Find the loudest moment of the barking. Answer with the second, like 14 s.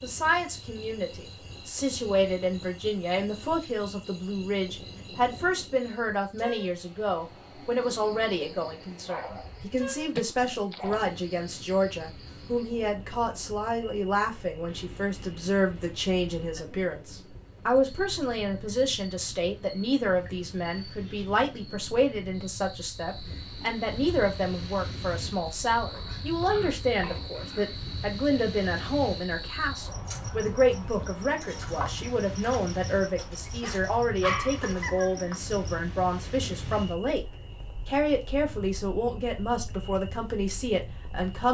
34 s.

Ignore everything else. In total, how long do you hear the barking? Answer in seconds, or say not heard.
3 s.